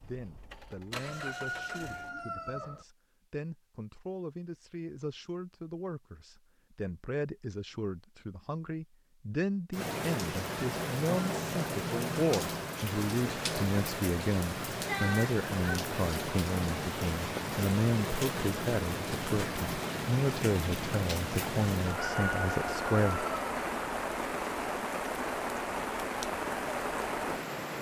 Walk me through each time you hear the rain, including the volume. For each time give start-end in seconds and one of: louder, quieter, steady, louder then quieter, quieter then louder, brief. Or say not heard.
9.7-27.7 steady.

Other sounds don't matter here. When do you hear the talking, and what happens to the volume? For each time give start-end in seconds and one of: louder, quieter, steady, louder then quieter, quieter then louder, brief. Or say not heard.
0.0-23.2 louder.